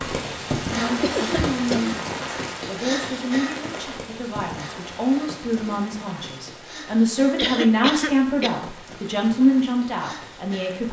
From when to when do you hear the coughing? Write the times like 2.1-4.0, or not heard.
1.0-1.8, 7.3-8.7.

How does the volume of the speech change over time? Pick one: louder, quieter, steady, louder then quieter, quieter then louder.
louder.